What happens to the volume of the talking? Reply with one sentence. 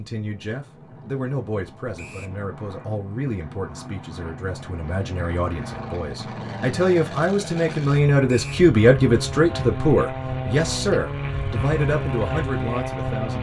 The loudness of the talking goes up, then down.